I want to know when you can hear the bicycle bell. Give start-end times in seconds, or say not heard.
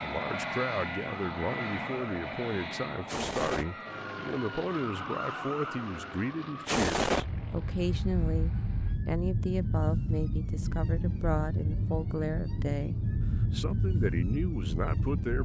not heard.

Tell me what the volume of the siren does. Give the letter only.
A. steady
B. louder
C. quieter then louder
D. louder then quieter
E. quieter
B.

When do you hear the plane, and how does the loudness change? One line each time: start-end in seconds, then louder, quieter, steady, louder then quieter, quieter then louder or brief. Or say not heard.
0.0-9.0 quieter.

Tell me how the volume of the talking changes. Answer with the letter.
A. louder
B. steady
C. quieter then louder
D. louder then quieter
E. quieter
B.